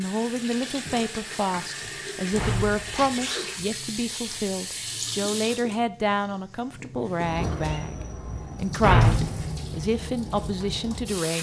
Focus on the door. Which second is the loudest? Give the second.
9 s.